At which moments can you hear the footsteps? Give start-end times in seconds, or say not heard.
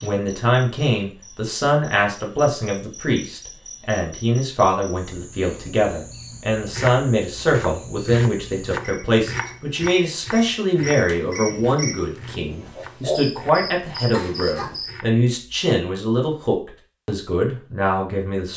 not heard.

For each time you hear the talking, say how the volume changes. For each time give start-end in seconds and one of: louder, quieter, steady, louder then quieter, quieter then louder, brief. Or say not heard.
0.0-18.5 steady.